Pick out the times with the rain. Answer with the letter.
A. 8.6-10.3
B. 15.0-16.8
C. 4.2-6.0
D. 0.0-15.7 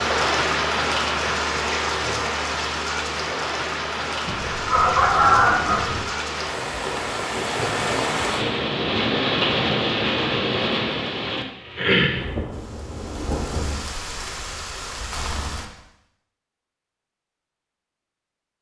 D.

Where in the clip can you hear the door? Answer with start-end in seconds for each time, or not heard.
not heard.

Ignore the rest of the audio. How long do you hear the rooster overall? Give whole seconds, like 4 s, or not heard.
2 s.